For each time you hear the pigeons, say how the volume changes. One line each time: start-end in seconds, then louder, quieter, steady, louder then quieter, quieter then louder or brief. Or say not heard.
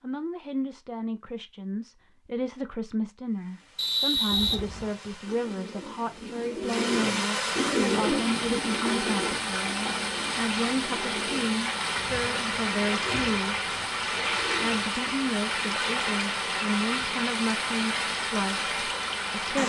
4.2-14.9 louder then quieter.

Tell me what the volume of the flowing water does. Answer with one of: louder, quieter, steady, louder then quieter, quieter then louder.
louder.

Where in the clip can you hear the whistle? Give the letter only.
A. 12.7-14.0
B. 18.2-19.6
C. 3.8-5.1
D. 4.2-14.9
C.